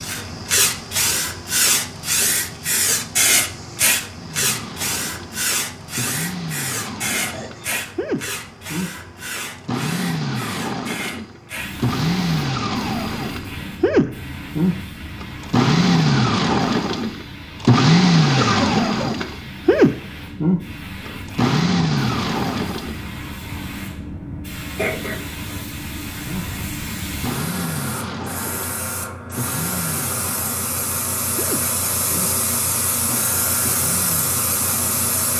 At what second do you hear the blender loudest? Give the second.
18 s.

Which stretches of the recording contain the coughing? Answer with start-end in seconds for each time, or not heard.
7.2-7.8, 18.4-19.3, 24.8-25.6.